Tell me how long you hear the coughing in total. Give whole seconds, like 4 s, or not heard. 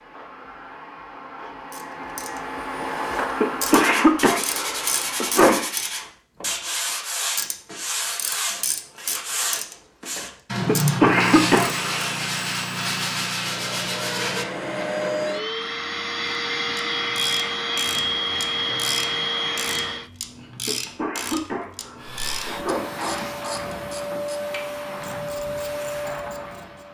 6 s.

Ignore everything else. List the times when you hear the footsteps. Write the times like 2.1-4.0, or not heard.
not heard.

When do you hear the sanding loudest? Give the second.
11 s.